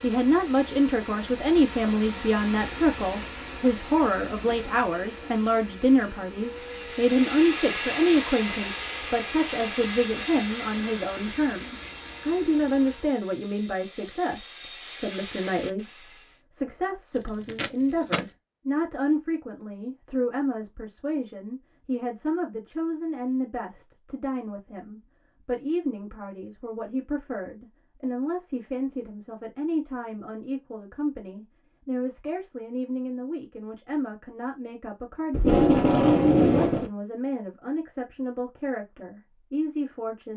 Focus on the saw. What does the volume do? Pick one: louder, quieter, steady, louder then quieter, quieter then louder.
quieter then louder.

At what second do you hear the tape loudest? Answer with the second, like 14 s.
36 s.